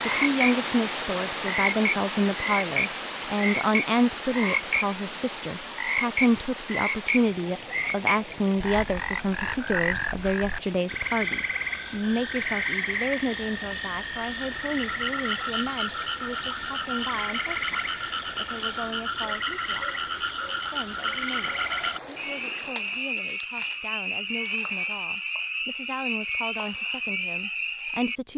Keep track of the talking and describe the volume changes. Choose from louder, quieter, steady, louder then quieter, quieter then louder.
quieter.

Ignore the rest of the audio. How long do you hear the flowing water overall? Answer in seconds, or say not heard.
23 s.